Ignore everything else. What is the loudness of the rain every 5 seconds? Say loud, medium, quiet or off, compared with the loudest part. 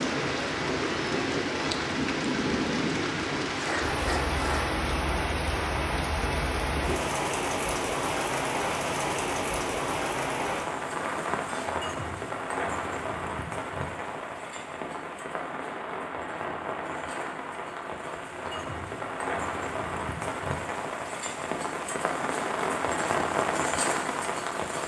loud, loud, loud, medium, loud.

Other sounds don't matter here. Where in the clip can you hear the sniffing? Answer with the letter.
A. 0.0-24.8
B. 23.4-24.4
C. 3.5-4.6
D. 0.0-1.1
C.